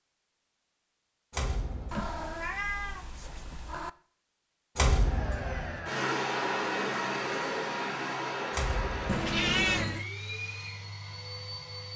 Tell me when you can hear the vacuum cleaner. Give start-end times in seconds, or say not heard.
5.0-11.9.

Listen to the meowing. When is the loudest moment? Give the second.
10 s.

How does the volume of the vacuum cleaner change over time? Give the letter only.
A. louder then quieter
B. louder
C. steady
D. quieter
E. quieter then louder
D.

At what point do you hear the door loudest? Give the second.
5 s.